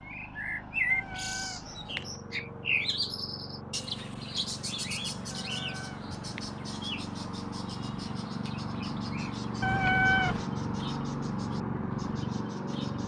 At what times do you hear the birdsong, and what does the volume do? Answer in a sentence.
You can hear the birdsong from 0.0 to 13.0 s, getting quieter.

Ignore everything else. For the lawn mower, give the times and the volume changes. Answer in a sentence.
You can hear the lawn mower from 0.0 to 13.0 s, getting louder.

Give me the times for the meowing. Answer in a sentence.
You can hear the meowing from 0.9 to 2.0 s, from 5.3 to 6.5 s and from 9.6 to 10.5 s.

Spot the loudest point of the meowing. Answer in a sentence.
The loudest moment of the meowing is at 10 seconds.